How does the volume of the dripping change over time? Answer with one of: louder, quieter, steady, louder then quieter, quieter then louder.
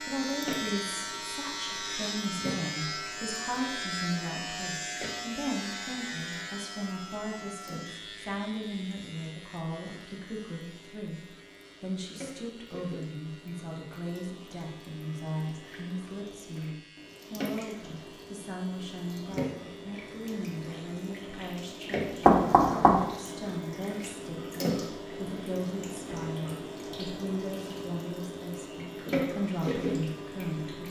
quieter then louder.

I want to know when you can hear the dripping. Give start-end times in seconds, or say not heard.
0.0-30.8.